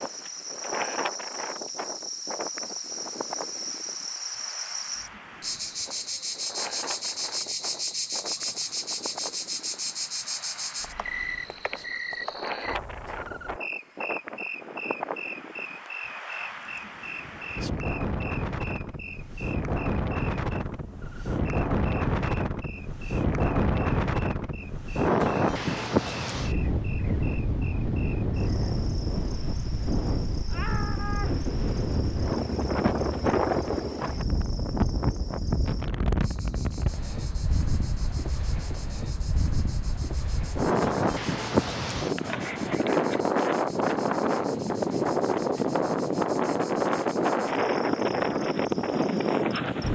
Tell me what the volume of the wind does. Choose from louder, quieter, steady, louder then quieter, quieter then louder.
louder.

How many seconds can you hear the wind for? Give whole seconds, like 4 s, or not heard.
50 s.